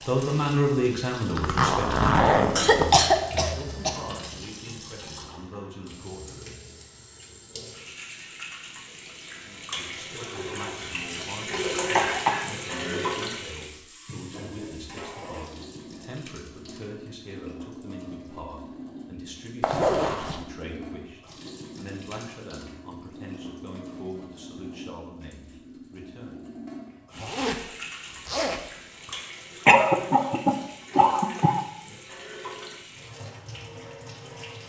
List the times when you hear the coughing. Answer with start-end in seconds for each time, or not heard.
2.5-4.2, 11.9-13.1, 29.6-31.6.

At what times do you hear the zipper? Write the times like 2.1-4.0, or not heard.
1.4-3.0, 19.6-20.4, 27.1-29.1.